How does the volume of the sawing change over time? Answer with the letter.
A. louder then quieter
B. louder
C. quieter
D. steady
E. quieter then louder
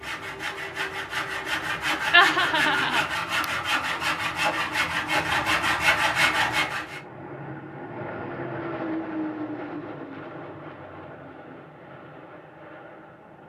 B.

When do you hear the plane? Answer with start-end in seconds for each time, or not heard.
0.0-3.1, 6.4-13.4.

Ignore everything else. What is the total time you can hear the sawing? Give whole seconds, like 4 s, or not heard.
7 s.